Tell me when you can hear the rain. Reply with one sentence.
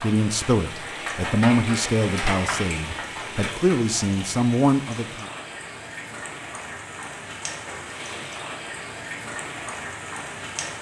You can hear the rain from 0.0 to 10.7 s.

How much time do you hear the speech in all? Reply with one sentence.
The speech can be heard for 5 seconds in total.